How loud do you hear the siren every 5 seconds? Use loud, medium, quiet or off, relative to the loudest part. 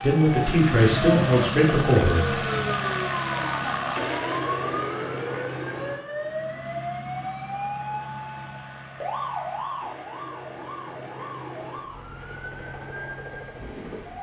loud, loud, medium.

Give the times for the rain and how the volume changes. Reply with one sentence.
The rain can't be heard in this clip.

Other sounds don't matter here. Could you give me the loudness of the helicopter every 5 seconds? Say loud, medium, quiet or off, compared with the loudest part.
loud, medium, quiet.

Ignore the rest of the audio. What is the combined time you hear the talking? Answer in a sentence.
The talking can be heard for 2 seconds in total.